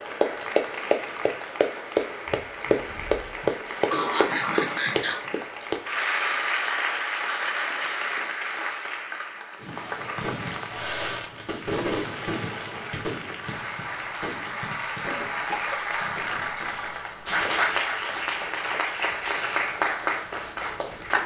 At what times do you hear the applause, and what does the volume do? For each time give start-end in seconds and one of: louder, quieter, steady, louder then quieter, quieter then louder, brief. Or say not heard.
0.0-21.2 quieter then louder.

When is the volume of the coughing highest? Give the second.
4 s.